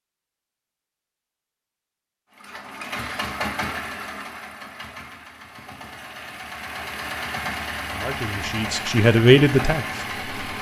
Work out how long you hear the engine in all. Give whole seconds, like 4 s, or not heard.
8 s.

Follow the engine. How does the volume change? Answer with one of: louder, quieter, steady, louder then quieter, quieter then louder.
quieter then louder.